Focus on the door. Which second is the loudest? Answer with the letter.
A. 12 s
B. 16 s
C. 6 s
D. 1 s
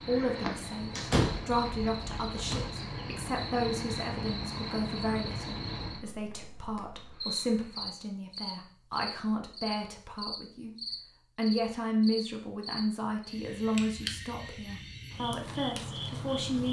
D.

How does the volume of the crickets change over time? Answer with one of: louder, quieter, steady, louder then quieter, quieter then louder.
steady.